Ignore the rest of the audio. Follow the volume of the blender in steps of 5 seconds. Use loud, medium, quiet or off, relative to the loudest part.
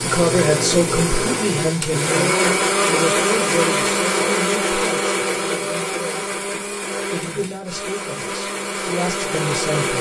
loud, medium.